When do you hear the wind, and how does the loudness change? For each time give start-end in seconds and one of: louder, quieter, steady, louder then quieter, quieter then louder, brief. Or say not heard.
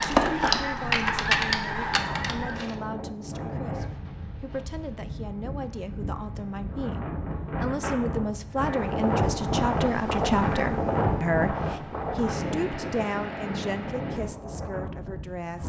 0.0-15.6 louder then quieter.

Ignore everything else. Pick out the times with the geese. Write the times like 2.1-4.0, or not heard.
0.0-2.8.